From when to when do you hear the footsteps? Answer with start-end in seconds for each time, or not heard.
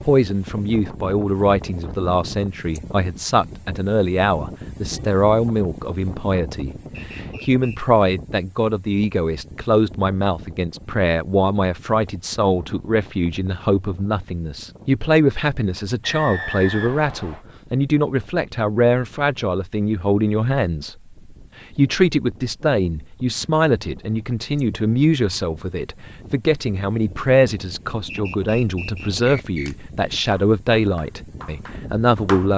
not heard.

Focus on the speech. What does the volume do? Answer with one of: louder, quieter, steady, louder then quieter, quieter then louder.
steady.